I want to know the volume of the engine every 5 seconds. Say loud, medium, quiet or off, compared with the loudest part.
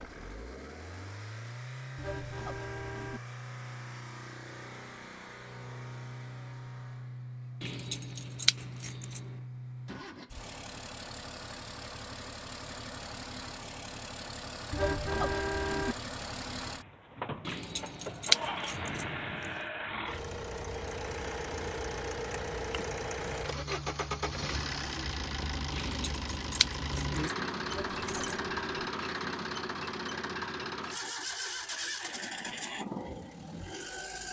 medium, medium, medium, loud, loud, loud, loud.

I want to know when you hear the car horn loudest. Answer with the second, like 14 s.
15 s.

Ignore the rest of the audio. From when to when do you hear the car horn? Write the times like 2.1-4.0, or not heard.
1.9-3.2, 14.7-15.9, 27.6-28.9.